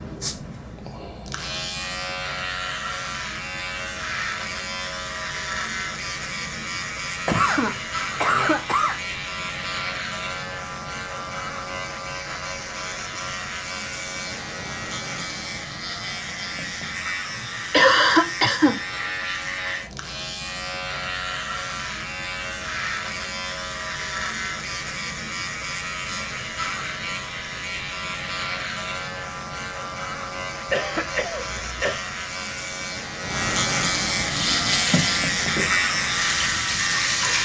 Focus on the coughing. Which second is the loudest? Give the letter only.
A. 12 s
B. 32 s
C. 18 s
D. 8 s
C.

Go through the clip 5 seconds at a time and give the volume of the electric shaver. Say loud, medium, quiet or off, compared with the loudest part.
medium, medium, medium, medium, medium, medium, loud, loud.